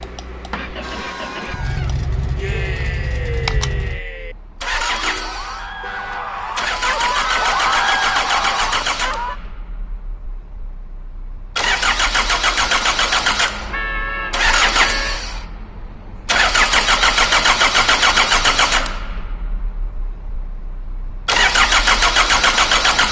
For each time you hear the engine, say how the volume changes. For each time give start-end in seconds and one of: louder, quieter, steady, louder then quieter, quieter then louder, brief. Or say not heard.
0.0-23.0 louder.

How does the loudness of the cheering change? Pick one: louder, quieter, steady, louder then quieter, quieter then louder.
louder.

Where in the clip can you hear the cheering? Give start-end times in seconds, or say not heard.
0.8-9.4.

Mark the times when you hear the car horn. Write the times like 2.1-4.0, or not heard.
4.8-7.0, 13.7-15.2.